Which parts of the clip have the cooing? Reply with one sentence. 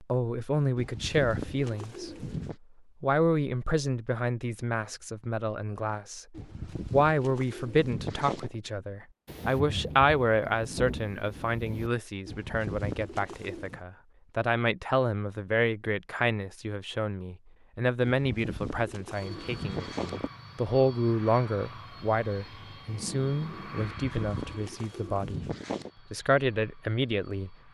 The cooing can be heard from 0.8 to 2.5 s, from 6.3 to 8.6 s, from 12.2 to 13.8 s, from 18.0 to 20.3 s and from 23.8 to 25.9 s.